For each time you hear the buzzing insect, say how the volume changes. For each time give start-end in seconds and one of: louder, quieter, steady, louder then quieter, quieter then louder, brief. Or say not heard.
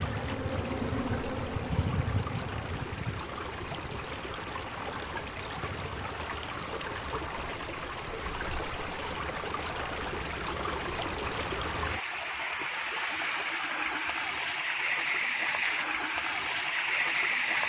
0.0-6.0 quieter.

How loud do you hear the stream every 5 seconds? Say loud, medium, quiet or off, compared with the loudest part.
medium, medium, loud, loud.